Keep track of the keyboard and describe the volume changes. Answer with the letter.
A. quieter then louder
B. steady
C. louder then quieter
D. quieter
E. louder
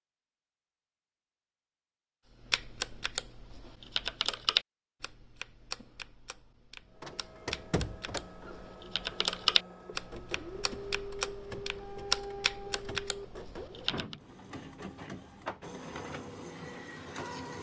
A.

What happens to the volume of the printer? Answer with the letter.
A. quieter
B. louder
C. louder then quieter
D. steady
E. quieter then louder
D.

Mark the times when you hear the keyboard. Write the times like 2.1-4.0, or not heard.
2.5-14.2.